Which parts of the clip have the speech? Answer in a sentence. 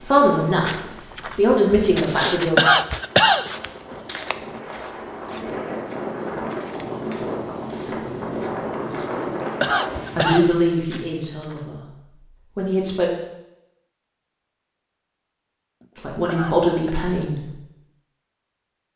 The speech can be heard from 0.0 to 2.5 s, from 10.2 to 11.8 s, from 12.6 to 13.1 s and from 15.9 to 17.6 s.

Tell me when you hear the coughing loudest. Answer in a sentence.
The loudest moment of the coughing is at 3 seconds.